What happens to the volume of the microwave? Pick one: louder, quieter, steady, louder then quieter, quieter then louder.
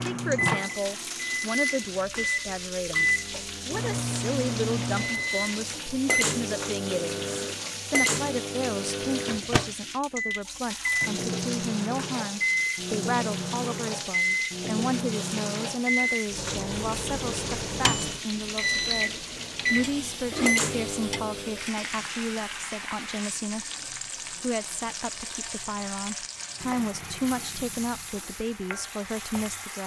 steady.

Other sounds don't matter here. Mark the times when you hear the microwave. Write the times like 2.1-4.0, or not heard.
0.0-21.6.